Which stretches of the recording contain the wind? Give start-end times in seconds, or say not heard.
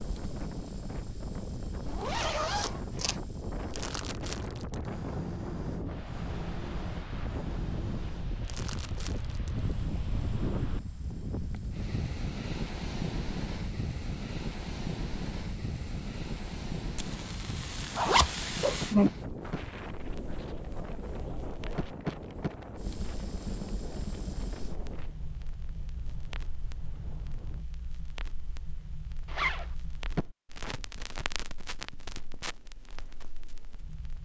0.0-27.6.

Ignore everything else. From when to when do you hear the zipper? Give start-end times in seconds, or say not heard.
1.9-3.1, 17.9-19.1, 29.2-29.7.